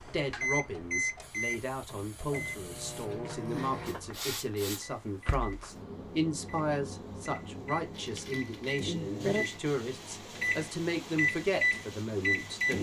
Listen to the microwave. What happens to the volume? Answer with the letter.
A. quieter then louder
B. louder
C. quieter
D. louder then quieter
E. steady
A.